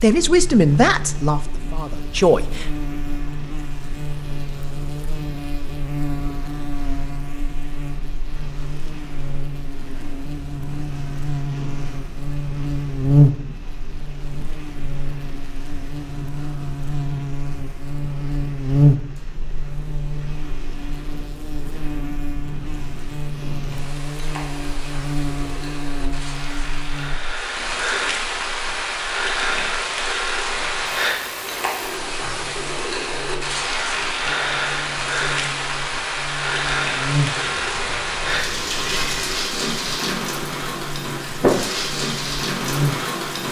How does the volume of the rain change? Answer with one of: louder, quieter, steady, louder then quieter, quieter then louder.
louder.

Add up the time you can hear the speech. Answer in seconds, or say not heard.
3 s.